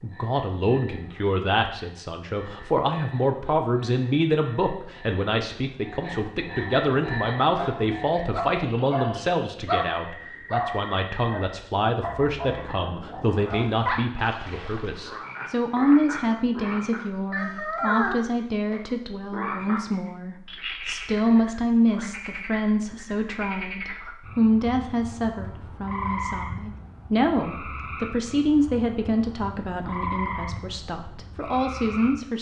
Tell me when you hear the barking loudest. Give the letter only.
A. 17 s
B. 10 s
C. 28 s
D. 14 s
B.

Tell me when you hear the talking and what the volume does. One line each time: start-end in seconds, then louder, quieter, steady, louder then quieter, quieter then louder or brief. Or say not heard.
0.0-32.3 steady.